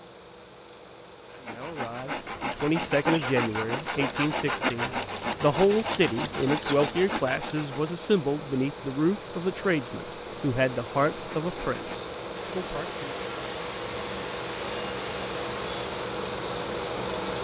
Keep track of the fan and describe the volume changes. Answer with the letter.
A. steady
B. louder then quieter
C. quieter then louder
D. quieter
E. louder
E.